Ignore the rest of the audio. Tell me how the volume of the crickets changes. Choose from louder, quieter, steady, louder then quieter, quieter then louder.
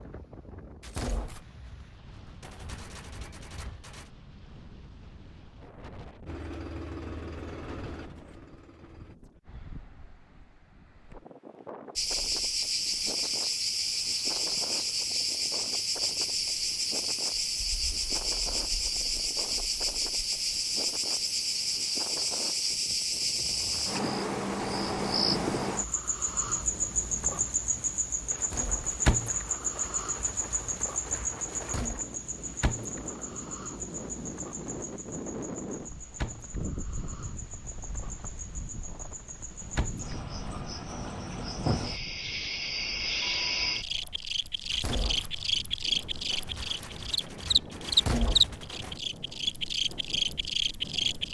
quieter then louder.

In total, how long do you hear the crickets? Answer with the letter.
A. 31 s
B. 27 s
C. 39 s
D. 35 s
C.